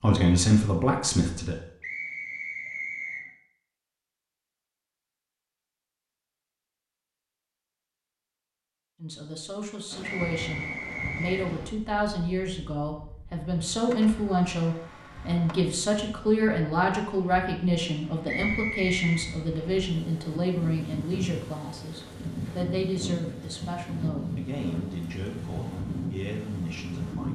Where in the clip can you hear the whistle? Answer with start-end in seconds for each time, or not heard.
1.8-3.2, 10.0-11.5, 18.2-19.2.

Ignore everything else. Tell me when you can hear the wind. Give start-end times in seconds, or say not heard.
9.9-27.3.